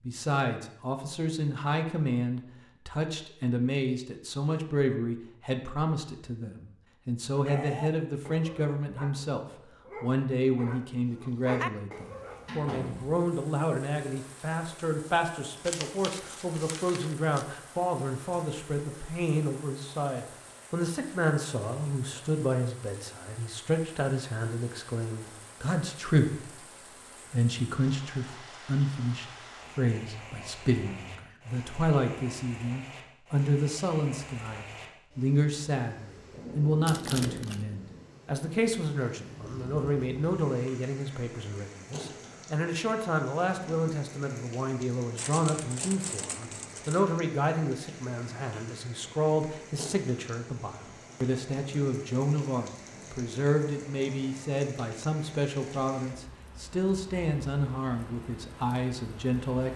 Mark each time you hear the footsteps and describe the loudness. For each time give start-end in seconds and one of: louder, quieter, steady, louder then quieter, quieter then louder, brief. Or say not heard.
not heard.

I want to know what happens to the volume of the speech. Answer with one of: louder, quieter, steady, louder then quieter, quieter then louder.
steady.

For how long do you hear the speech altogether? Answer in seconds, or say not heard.
59 s.